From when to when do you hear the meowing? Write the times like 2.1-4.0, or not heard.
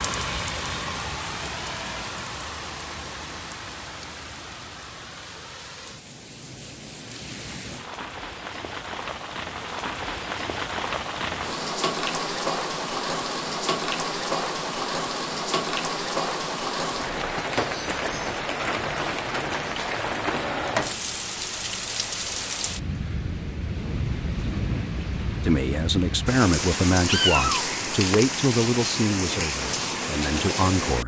27.1-27.7.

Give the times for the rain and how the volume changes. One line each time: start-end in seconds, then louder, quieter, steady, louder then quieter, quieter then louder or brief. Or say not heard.
0.0-31.0 louder.